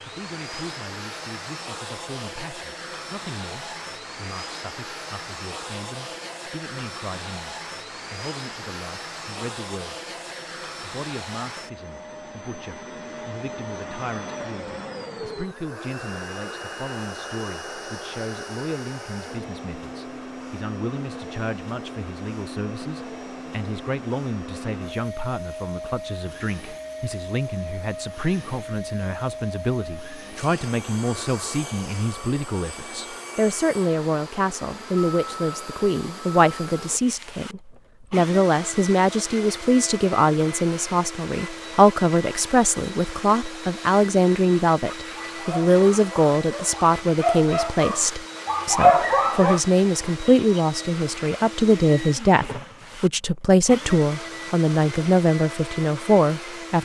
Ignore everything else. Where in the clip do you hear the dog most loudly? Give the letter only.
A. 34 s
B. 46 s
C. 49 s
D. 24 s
C.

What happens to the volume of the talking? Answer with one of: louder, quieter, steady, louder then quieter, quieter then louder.
louder.